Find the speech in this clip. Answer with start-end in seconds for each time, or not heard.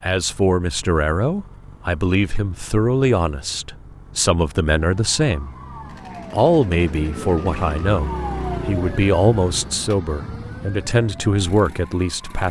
0.0-5.5, 6.3-12.4.